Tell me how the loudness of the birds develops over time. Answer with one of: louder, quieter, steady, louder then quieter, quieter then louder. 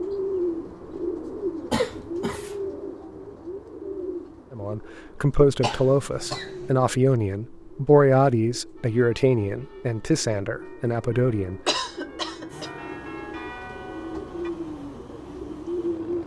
quieter then louder.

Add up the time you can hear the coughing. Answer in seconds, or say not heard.
3 s.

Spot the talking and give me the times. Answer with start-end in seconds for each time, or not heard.
4.5-11.6.